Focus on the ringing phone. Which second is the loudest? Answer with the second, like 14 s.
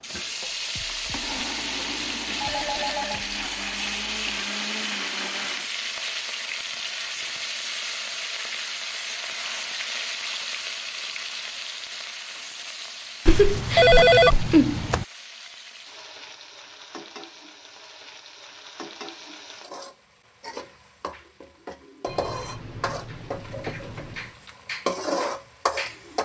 14 s.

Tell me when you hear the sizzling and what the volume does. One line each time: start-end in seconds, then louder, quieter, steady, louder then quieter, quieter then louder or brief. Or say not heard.
0.0-26.2 quieter then louder.